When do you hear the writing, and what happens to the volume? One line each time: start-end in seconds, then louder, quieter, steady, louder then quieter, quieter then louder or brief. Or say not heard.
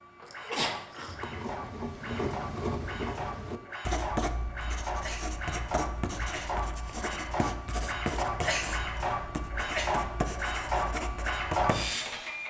1.1-11.9 steady.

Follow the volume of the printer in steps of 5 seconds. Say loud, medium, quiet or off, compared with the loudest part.
medium, loud, loud.